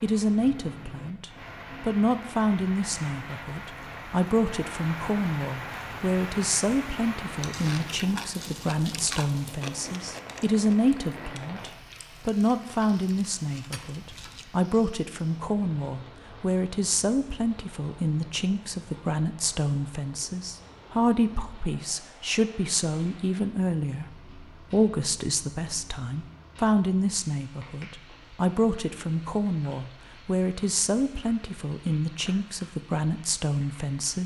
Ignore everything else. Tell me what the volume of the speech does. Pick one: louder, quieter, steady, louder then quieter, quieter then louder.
steady.